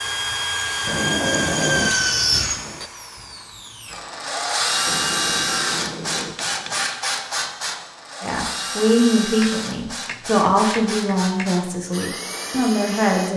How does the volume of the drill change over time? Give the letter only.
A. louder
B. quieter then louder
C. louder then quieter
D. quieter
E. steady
D.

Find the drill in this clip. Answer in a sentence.
You can hear the drill from 0.0 to 13.3 s.